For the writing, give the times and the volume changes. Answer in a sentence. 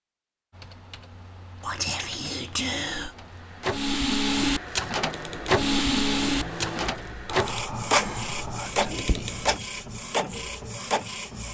You can't hear the writing here.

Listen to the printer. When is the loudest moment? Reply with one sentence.
The volume of the printer peaks at 6 seconds.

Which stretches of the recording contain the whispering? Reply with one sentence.
The whispering can be heard from 1.6 to 3.1 s and from 7.2 to 9.3 s.